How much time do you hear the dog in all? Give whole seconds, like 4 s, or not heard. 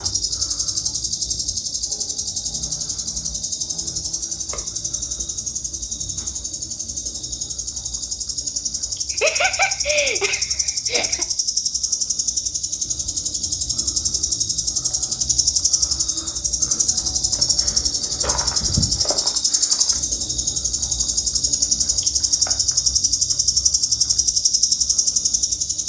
not heard.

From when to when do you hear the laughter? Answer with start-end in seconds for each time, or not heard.
9.1-11.2.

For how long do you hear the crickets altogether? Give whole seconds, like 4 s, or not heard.
26 s.